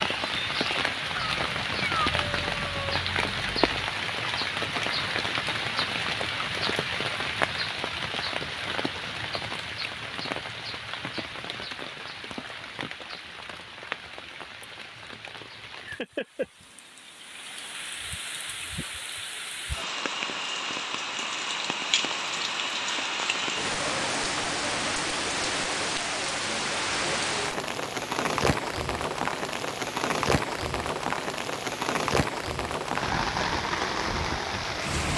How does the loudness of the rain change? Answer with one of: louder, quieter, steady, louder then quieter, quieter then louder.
quieter then louder.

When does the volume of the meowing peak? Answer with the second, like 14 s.
2 s.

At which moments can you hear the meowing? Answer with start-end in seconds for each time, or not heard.
1.1-3.9.